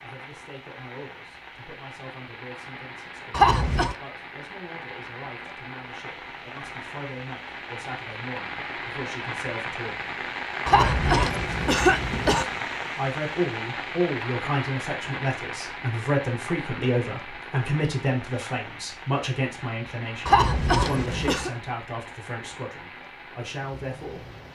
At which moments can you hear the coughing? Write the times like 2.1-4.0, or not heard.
3.3-4.0, 10.7-12.4, 20.2-21.5.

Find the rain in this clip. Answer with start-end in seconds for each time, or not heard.
0.0-24.5.